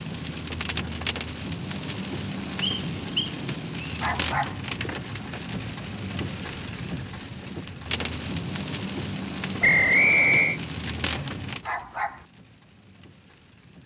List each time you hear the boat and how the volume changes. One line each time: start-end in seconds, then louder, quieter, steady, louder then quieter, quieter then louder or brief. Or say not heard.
not heard.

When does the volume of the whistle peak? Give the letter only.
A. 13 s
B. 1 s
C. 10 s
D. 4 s
C.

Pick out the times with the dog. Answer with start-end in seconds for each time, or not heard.
4.0-4.6, 11.6-12.2.